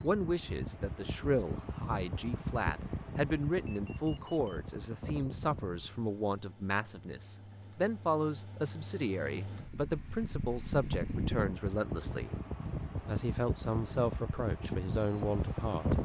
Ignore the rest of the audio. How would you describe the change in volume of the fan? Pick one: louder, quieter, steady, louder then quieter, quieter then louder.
quieter then louder.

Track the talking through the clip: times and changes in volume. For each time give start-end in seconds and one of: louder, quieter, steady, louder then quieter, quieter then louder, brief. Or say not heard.
0.0-12.3 steady
13.1-16.0 brief.